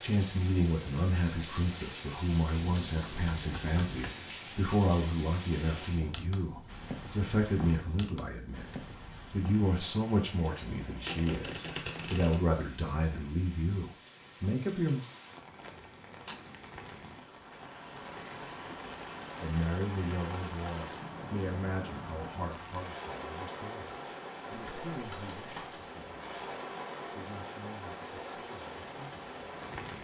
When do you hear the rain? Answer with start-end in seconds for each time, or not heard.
0.0-29.9.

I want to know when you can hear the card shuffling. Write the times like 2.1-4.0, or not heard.
2.5-4.2, 11.1-12.4, 24.5-25.8.